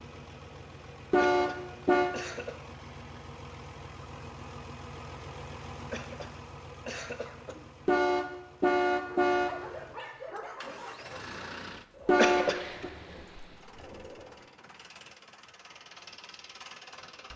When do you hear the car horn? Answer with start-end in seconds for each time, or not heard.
1.1-2.1, 7.8-9.6, 12.1-12.9.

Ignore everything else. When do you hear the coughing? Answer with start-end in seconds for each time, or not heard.
1.3-2.6, 5.9-7.7, 12.2-12.6.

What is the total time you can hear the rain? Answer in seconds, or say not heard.
not heard.